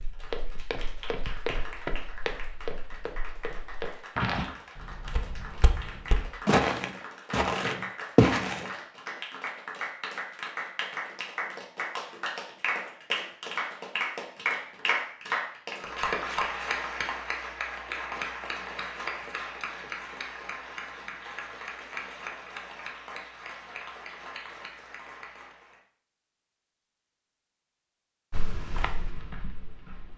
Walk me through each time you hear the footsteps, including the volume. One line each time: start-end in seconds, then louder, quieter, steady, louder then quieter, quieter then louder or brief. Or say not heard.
0.0-8.7 louder
28.3-30.1 brief.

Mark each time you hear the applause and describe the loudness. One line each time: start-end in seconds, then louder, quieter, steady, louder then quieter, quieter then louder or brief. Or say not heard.
0.0-25.8 louder then quieter.